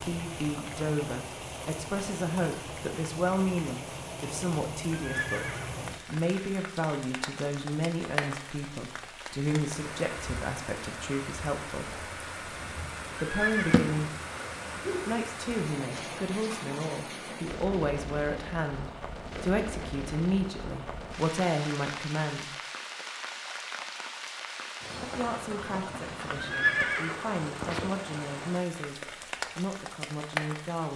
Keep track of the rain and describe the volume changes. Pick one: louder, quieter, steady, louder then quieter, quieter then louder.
steady.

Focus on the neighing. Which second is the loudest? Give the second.
27 s.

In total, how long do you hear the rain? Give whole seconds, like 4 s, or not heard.
31 s.